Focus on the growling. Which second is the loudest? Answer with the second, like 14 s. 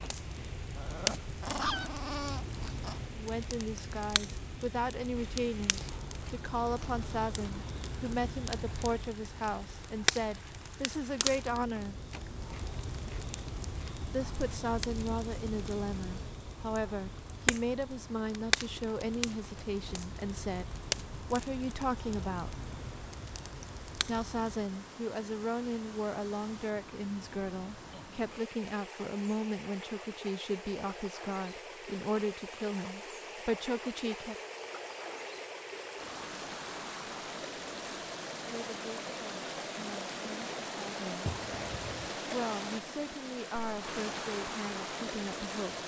2 s.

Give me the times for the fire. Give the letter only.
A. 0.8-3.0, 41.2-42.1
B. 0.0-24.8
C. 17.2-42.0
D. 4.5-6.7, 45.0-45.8
B.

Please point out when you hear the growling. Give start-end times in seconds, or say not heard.
0.8-3.0, 41.2-42.1.